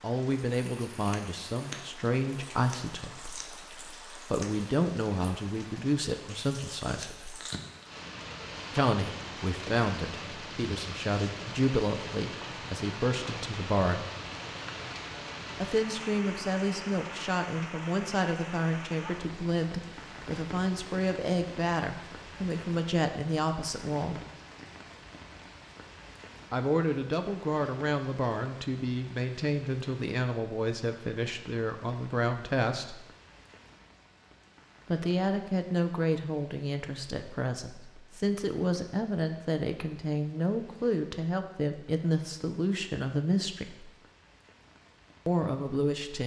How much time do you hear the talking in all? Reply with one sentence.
The talking can be heard for 38 seconds in total.